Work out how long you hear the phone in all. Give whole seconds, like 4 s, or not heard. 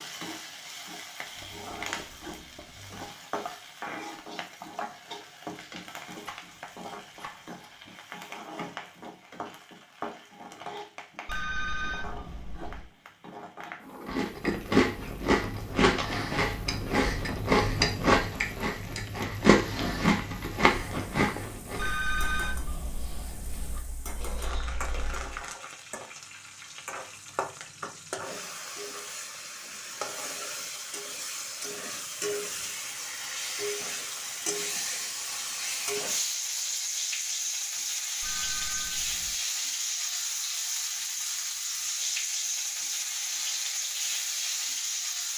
5 s.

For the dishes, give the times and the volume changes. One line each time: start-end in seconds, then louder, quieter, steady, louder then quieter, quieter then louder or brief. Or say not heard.
not heard.